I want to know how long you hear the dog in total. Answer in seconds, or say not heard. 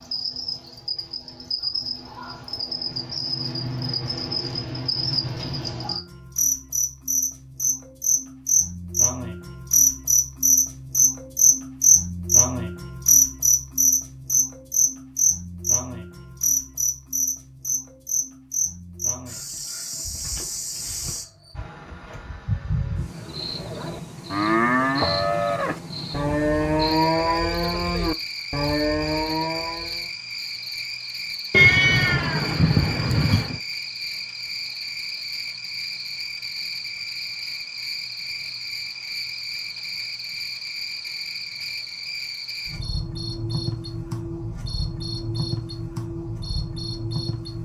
not heard.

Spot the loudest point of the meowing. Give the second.
32 s.